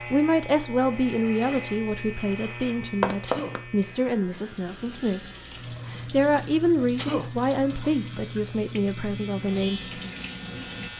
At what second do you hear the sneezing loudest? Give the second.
7 s.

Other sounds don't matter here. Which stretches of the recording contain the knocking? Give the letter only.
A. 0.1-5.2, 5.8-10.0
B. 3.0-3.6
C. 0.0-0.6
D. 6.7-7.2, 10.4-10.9
B.